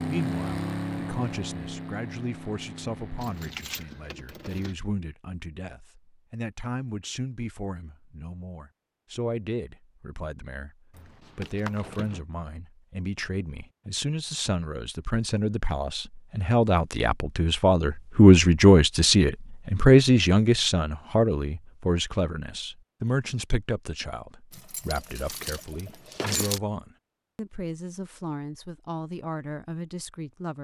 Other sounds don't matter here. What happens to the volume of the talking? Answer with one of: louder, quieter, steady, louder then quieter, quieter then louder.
louder then quieter.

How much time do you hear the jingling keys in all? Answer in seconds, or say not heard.
5 s.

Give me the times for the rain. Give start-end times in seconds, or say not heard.
not heard.